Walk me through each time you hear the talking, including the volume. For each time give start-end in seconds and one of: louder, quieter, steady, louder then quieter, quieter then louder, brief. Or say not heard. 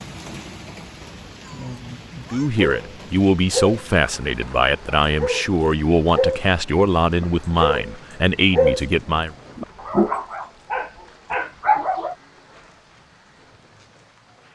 2.3-9.3 steady.